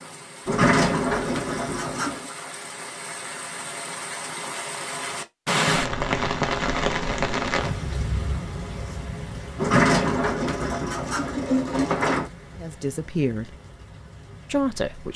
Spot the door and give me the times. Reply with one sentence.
You can hear the door from 0.5 to 2.3 s and from 9.6 to 12.3 s.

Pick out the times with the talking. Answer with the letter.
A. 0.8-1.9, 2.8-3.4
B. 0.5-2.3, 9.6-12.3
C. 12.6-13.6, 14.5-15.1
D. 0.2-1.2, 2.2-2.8
C.